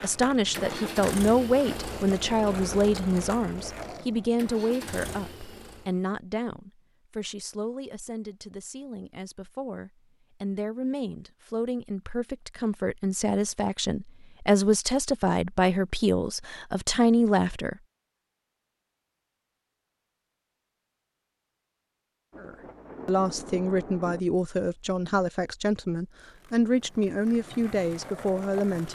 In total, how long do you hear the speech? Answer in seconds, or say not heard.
24 s.